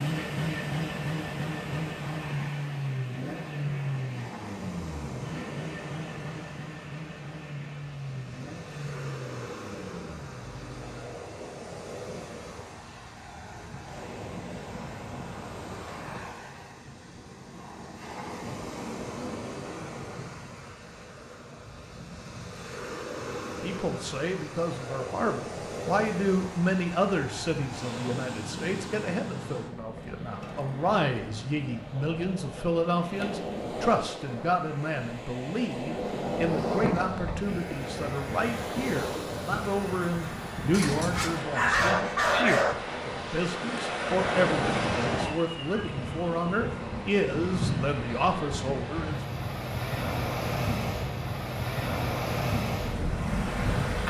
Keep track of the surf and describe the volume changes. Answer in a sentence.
The volume of the surf goes up.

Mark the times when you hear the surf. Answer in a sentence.
You can hear the surf from 0.1 to 54.0 s.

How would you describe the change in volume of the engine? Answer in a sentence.
The volume of the engine goes down.